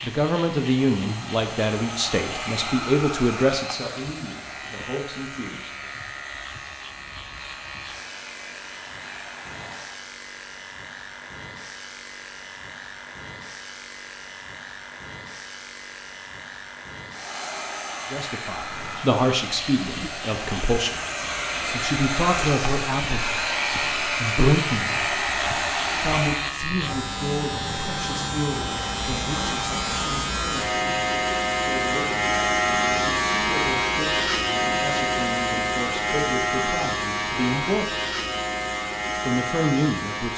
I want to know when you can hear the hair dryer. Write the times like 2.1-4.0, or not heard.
0.0-10.1, 17.1-26.6.